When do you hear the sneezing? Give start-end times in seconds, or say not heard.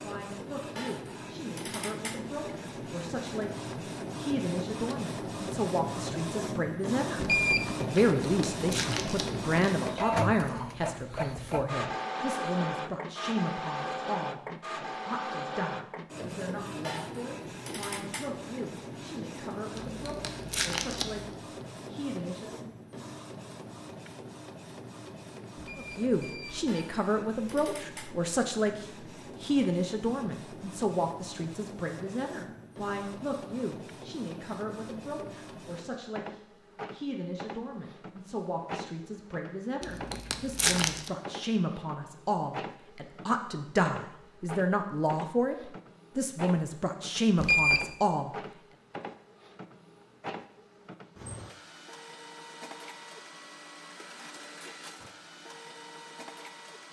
not heard.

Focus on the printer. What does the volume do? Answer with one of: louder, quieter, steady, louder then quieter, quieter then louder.
quieter.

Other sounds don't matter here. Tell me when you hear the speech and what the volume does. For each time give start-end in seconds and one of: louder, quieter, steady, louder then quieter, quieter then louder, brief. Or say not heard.
0.0-22.6 louder then quieter
25.8-48.3 quieter then louder.